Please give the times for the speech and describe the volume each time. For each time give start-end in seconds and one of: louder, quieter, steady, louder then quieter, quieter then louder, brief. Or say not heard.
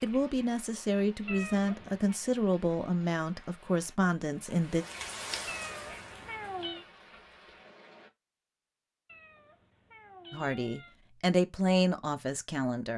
0.0-4.8 steady
10.3-12.9 brief.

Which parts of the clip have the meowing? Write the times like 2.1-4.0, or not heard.
1.2-2.1, 5.5-6.8, 9.1-10.9.